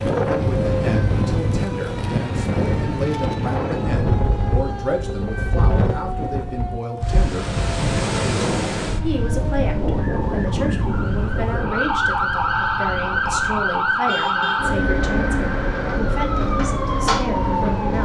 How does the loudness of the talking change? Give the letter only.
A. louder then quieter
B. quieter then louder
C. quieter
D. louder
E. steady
E.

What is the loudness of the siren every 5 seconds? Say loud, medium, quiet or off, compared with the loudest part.
medium, medium, loud, loud.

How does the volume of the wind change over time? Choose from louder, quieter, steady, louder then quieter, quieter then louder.
quieter.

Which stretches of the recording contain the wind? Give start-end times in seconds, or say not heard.
0.0-13.9.